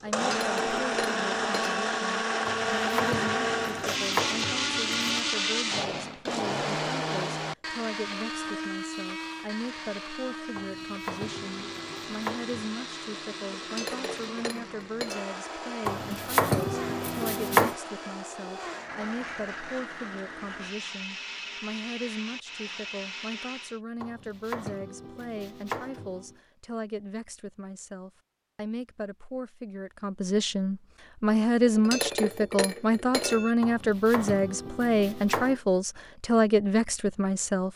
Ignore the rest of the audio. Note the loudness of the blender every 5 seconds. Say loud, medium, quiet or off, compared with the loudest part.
loud, loud, medium, medium, medium, off, off, off.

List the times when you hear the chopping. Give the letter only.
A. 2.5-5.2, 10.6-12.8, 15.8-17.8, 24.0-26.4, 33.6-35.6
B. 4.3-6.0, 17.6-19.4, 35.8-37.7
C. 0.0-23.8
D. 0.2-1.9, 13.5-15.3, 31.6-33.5
A.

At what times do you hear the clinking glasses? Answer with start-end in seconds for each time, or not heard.
0.2-1.9, 13.5-15.3, 31.6-33.5.